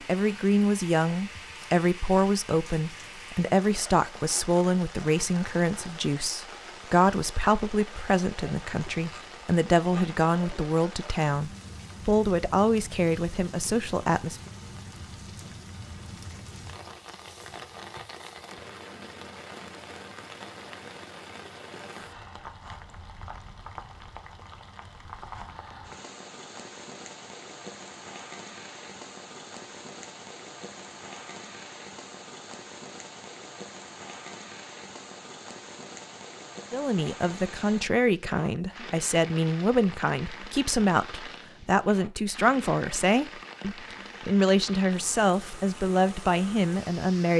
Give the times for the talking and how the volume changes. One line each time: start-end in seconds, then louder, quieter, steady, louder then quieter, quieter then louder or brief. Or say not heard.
0.1-14.4 steady
36.7-47.3 steady.